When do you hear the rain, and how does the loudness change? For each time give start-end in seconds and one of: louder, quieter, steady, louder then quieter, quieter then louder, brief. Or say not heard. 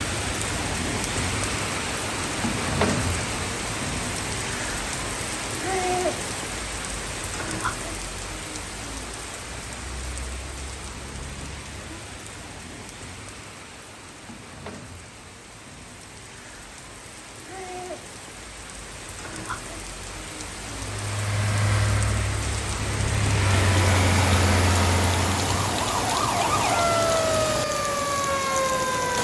0.0-29.1 quieter then louder.